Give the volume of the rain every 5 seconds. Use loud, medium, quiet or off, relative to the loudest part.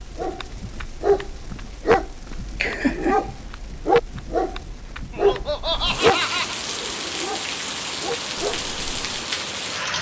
quiet, loud.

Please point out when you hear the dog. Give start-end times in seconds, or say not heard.
0.1-9.2.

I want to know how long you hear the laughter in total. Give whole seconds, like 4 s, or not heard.
2 s.